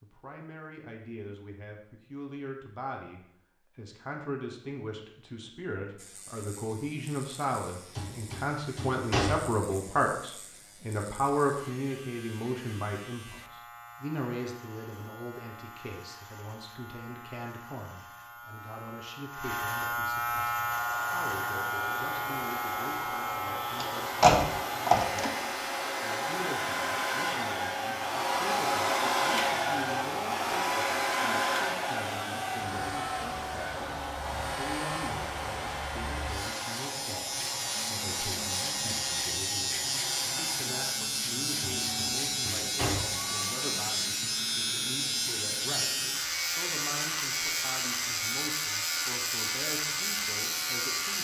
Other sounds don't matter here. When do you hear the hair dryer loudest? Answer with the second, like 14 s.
29 s.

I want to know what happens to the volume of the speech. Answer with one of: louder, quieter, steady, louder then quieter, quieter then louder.
quieter.